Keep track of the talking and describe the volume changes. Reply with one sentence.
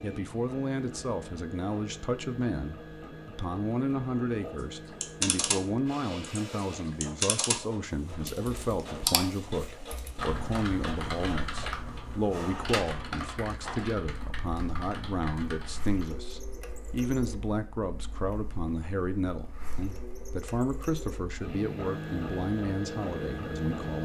The loudness of the talking stays about the same.